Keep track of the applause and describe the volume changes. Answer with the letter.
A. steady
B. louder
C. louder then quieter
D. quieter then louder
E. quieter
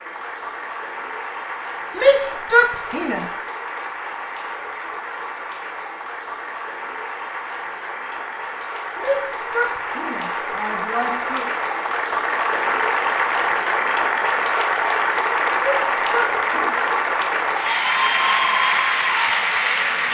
B.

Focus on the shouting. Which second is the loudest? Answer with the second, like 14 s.
2 s.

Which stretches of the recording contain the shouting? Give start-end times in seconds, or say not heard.
1.9-3.2, 8.9-11.4, 15.6-16.8.